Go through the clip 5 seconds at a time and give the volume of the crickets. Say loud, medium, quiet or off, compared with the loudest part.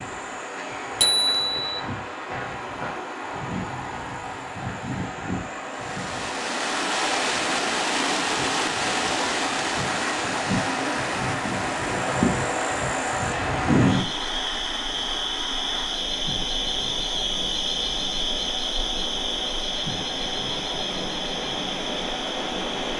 medium, medium, loud, loud, medium.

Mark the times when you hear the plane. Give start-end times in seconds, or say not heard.
not heard.